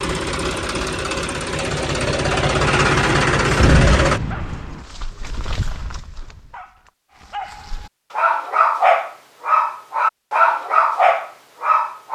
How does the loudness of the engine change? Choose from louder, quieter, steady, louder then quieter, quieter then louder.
louder.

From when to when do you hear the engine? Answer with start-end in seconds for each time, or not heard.
0.0-4.2.